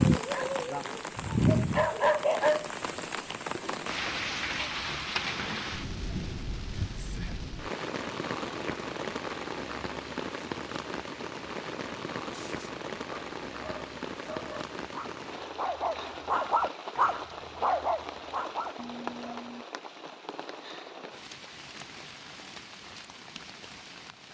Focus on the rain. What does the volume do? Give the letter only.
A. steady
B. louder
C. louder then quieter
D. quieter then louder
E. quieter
E.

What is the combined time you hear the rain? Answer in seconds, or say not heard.
24 s.